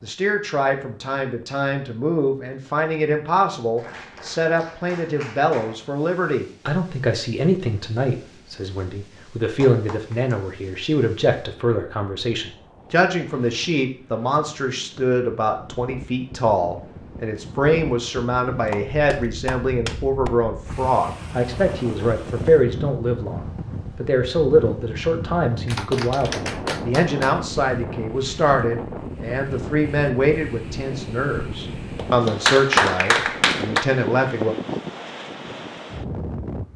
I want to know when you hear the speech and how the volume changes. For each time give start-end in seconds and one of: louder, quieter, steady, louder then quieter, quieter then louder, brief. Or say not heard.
0.0-34.5 steady.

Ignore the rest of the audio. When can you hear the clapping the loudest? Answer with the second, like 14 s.
33 s.